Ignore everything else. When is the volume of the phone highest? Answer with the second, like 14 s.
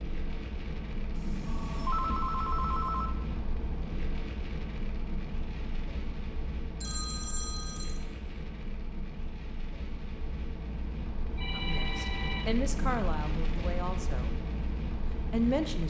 2 s.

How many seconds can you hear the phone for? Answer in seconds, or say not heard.
4 s.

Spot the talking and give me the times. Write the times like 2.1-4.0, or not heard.
11.5-14.3, 15.1-15.8.